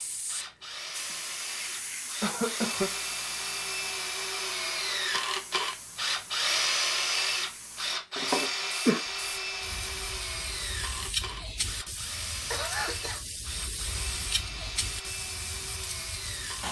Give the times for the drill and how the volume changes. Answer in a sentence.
You can hear the drill from 0.0 to 16.6 s, getting louder then quieter.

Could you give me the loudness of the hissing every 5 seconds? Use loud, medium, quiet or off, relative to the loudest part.
loud, medium, loud, loud.